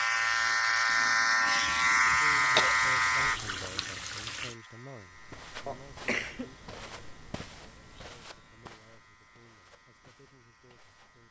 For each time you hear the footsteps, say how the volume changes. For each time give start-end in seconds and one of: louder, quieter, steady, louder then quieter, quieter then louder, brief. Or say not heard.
5.0-11.2 quieter.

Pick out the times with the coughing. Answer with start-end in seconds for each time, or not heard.
2.5-3.9, 5.7-6.5.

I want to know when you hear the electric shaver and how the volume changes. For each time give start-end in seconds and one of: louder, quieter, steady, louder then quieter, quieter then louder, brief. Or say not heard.
0.0-11.2 quieter.